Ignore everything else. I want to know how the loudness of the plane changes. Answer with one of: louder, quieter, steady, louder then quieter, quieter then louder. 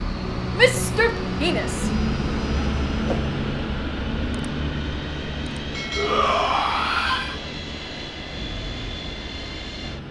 quieter.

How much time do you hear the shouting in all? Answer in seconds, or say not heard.
3 s.